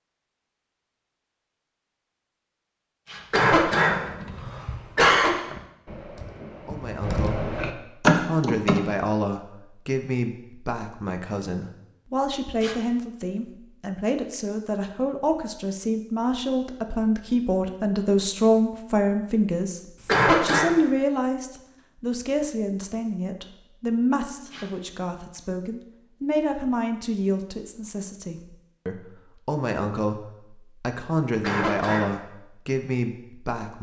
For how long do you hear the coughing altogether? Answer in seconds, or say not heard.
3 s.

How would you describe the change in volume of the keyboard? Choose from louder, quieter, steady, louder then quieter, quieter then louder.
louder.